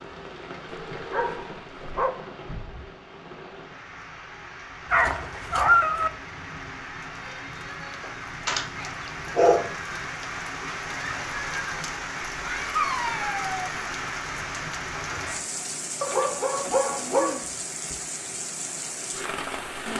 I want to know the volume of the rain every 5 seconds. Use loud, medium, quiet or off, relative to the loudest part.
medium, medium, loud, loud.